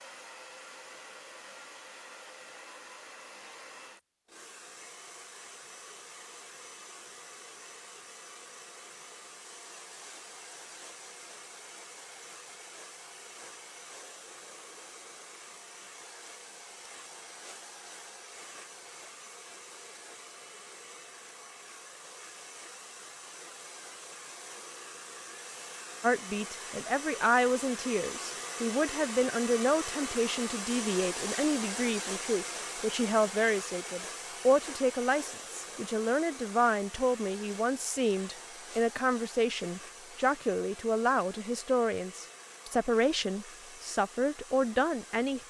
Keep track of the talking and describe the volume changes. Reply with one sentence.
The volume of the talking stays about the same.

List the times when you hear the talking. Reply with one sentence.
The talking can be heard from 26.0 to 45.4 s.